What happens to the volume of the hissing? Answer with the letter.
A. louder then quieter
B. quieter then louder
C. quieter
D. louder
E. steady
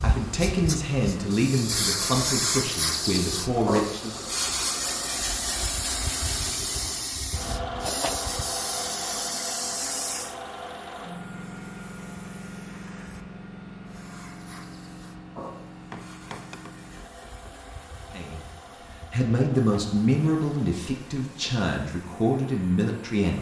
C.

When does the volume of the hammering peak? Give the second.
16 s.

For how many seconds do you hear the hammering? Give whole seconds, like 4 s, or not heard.
2 s.